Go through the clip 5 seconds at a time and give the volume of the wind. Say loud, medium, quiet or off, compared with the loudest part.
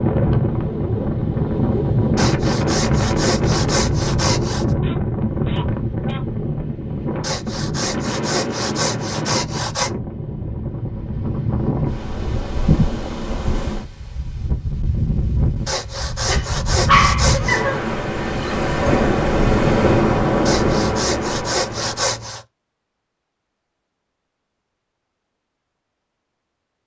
loud, medium, medium, loud, loud, off.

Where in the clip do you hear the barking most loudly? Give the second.
17 s.